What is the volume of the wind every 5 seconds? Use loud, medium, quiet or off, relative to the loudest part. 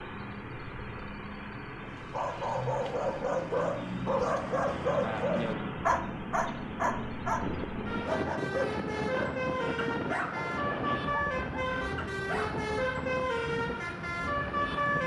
off, loud, loud.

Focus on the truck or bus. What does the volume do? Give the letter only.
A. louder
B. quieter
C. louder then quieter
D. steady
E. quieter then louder
A.